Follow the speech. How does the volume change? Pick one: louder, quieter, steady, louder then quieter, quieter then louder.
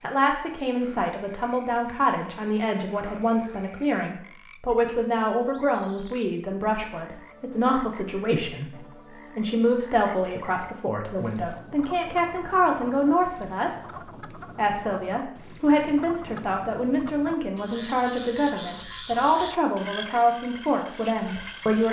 steady.